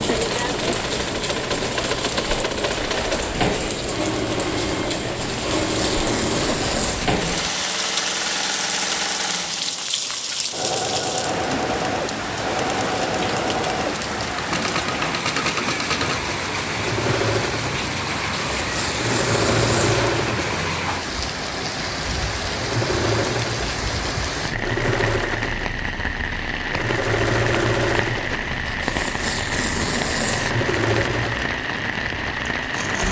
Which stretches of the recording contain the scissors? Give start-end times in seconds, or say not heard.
not heard.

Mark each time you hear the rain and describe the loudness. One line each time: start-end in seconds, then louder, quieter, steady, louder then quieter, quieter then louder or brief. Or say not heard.
0.0-33.0 steady.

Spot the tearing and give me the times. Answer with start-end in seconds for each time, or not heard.
5.2-7.1, 18.3-20.1, 28.6-30.5.